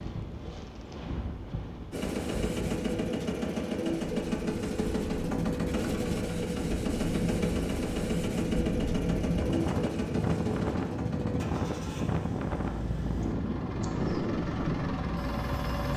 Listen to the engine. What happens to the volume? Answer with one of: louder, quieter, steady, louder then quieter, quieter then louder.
quieter.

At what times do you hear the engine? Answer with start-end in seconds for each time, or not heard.
1.9-15.9.